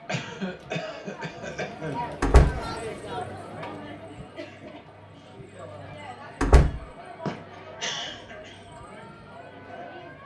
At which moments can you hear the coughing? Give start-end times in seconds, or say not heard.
0.1-2.0, 7.2-8.6.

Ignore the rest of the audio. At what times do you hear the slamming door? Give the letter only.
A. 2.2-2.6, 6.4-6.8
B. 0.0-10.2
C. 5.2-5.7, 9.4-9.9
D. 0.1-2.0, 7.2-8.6
A.